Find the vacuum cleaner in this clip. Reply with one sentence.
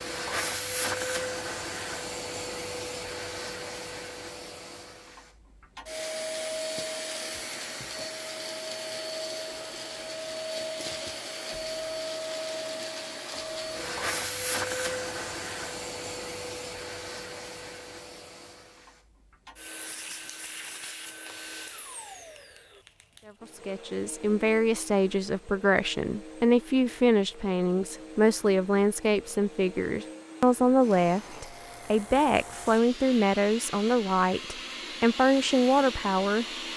You can hear the vacuum cleaner from 0.0 to 36.7 s.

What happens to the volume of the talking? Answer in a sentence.
The volume of the talking stays about the same.